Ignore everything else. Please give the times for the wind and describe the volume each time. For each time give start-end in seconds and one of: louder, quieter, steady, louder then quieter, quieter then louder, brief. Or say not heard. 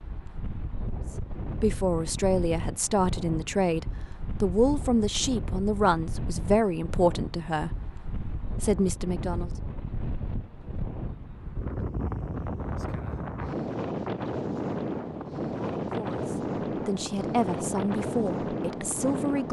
0.0-19.4 louder.